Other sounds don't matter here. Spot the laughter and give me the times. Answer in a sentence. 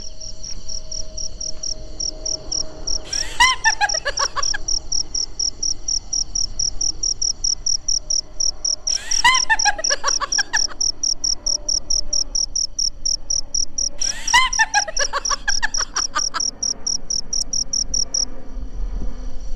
You can hear the laughter from 3.0 to 4.6 s, from 8.9 to 10.8 s and from 14.0 to 16.4 s.